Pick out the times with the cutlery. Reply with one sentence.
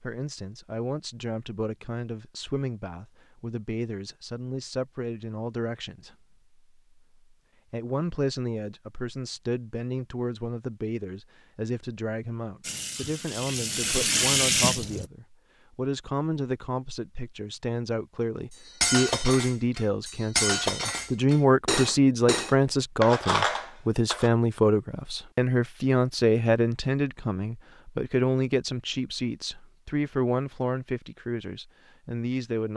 The cutlery can be heard from 18.5 to 24.3 s.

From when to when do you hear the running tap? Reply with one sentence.
You can hear the running tap from 12.6 to 15.1 s.